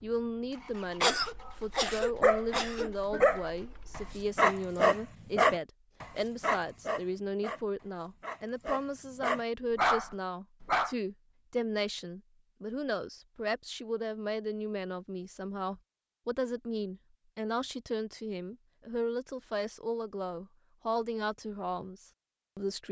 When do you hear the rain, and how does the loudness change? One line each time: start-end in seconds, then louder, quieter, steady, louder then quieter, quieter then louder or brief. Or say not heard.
not heard.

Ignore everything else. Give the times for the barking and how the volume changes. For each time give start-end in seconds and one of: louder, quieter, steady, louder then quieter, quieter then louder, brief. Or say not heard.
1.4-10.9 quieter then louder.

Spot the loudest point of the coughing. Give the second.
1 s.